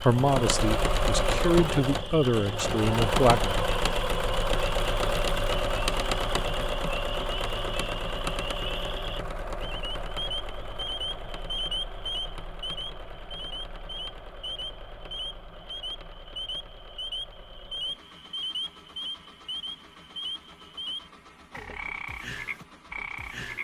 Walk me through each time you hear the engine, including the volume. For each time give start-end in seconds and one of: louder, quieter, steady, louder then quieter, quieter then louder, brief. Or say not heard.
0.0-23.5 quieter.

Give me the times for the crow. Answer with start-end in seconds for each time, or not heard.
not heard.